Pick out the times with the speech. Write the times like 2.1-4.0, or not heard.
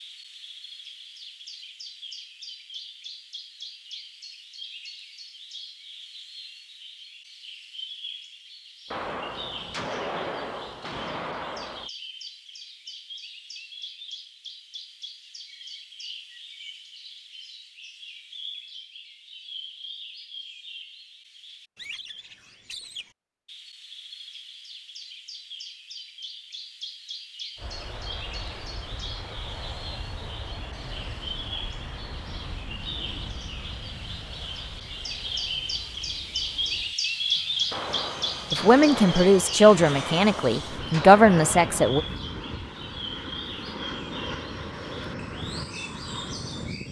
38.5-42.0.